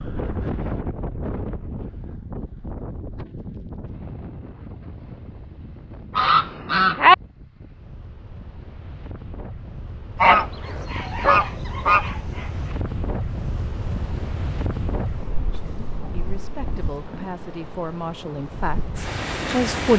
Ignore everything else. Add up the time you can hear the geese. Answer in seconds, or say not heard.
3 s.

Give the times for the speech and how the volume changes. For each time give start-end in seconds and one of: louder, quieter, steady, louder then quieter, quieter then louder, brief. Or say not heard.
15.3-19.9 louder then quieter.